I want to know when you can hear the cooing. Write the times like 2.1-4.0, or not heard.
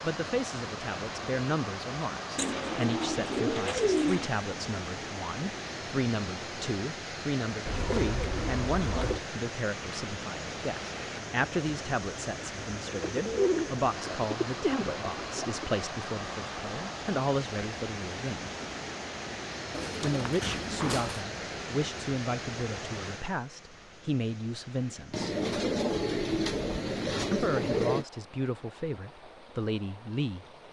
2.4-4.3, 7.7-9.2, 12.8-15.8, 19.7-21.2, 25.1-28.1.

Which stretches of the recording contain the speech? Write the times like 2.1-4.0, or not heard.
0.0-18.5, 20.0-25.4, 27.3-30.4.